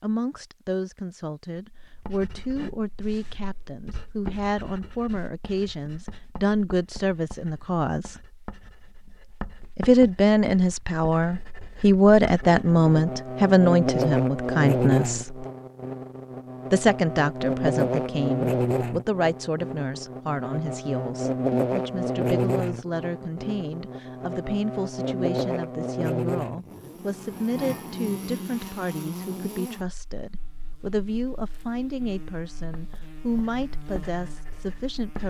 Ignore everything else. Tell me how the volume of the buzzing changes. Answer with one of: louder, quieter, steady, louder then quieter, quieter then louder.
quieter.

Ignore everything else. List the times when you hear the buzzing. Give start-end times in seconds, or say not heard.
12.4-35.2.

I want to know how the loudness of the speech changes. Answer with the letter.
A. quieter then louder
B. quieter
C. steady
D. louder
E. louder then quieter
E.